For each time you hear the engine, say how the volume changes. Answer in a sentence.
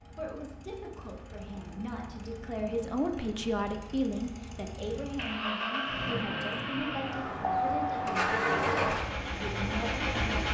The engine can be heard from 0.0 to 10.4 s, getting louder.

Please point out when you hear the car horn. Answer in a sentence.
The car horn can't be heard in this clip.